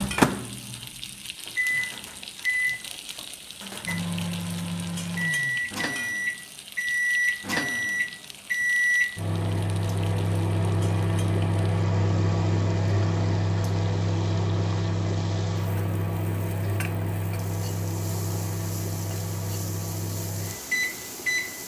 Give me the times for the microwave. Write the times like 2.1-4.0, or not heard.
0.0-21.6.